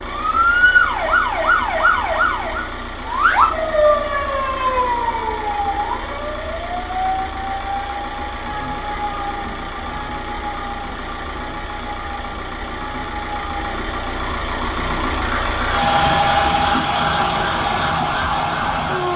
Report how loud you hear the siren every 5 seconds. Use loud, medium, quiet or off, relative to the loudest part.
loud, medium, quiet, medium.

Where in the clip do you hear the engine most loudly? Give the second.
16 s.